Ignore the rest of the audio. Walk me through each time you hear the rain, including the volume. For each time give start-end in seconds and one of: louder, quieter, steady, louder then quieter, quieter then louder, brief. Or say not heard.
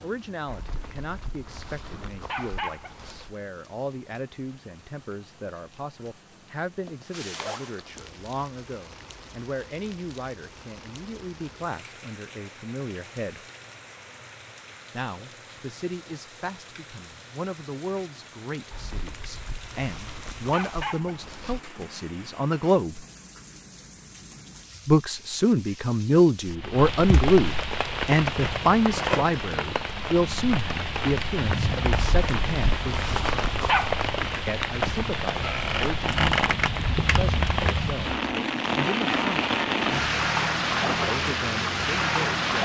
0.0-42.6 louder.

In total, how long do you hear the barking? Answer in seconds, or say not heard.
8 s.